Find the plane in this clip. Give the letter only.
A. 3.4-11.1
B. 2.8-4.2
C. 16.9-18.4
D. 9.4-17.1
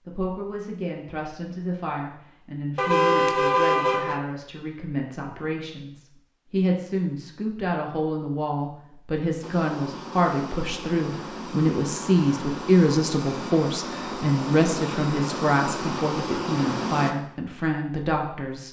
D.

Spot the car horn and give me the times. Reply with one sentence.
The car horn can be heard from 2.8 to 4.2 s.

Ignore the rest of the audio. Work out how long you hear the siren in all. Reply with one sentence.
You can't hear the siren here.